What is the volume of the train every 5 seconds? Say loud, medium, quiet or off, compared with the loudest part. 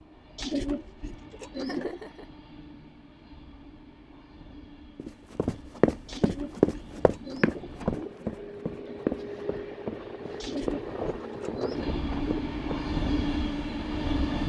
quiet, medium, loud.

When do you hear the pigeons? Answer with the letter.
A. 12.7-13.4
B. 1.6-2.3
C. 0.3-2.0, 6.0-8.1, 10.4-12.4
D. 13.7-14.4
C.